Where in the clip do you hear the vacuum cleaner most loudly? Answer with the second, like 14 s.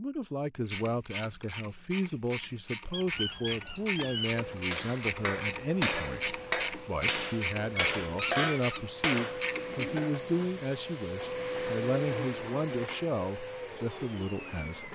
12 s.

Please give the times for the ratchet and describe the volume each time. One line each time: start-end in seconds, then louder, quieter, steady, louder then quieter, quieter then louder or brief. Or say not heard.
0.6-9.9 louder.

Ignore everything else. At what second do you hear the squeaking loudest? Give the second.
4 s.